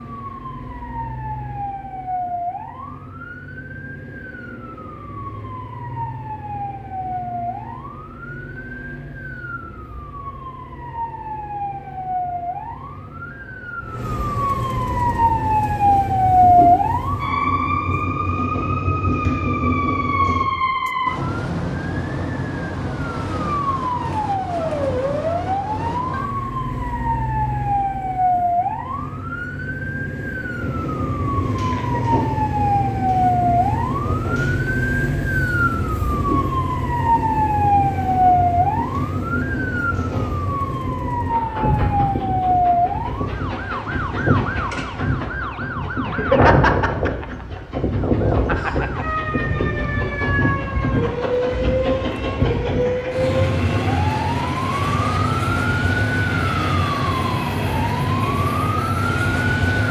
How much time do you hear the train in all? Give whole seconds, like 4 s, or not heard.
35 s.